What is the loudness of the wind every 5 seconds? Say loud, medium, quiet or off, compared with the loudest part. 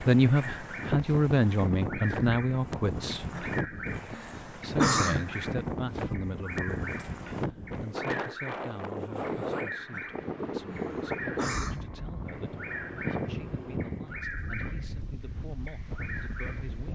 loud, loud, loud, medium.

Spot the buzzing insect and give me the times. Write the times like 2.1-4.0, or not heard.
not heard.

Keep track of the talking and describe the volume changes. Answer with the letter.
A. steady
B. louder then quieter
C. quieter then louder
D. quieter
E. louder
D.